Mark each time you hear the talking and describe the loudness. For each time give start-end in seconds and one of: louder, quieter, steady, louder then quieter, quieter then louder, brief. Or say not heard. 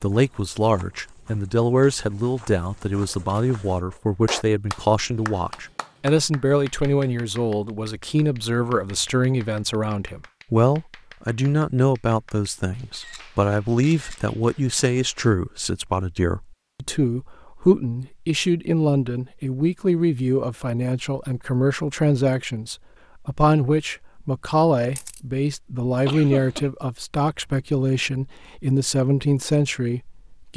0.0-30.5 steady.